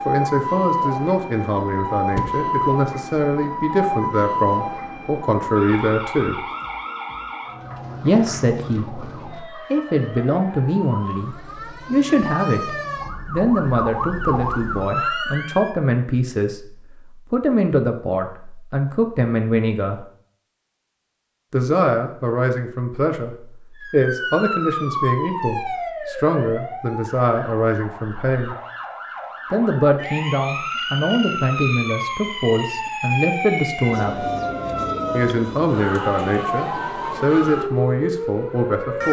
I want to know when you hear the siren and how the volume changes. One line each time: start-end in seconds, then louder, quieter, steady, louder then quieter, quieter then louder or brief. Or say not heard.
0.0-15.8 quieter then louder
23.8-39.0 quieter then louder.